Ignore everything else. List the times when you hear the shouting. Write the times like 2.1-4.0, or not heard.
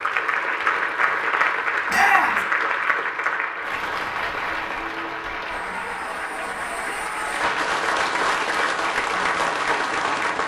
1.9-2.5.